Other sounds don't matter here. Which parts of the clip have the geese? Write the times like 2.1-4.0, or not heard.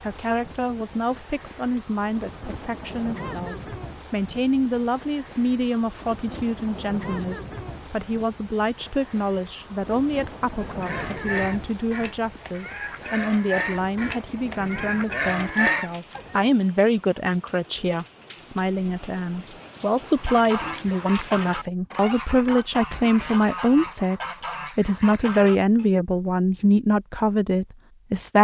10.6-16.5, 20.1-25.9.